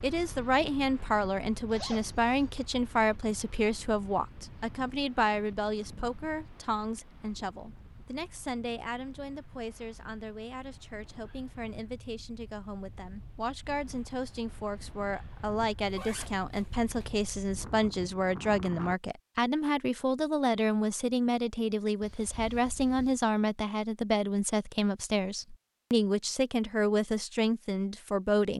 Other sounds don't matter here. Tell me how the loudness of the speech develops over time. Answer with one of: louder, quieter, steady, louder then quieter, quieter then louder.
quieter then louder.